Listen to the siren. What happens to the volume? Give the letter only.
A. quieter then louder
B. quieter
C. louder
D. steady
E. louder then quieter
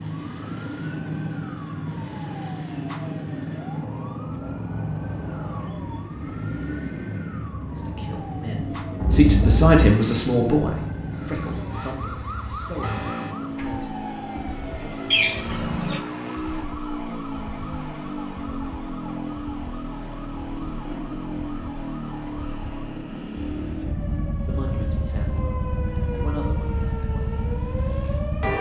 A.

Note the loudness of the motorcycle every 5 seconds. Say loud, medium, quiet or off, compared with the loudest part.
loud, loud, loud, loud, loud, medium.